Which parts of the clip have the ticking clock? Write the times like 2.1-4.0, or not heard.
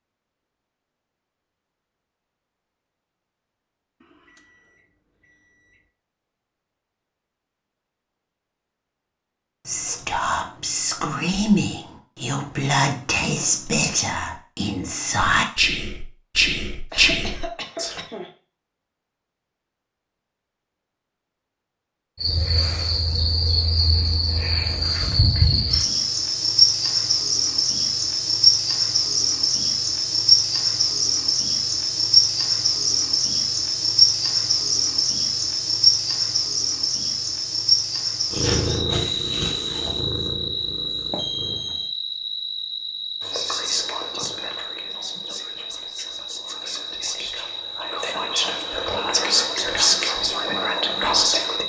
not heard.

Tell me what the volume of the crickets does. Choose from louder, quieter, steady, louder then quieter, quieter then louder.
quieter.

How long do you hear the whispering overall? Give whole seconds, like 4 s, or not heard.
17 s.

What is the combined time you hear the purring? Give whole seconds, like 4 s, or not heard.
3 s.